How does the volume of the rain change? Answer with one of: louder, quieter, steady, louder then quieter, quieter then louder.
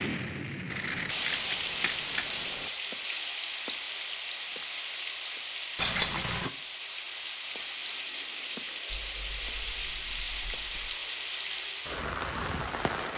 steady.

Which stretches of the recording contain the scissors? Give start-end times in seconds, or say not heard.
0.7-2.7, 5.8-6.5, 8.8-10.9.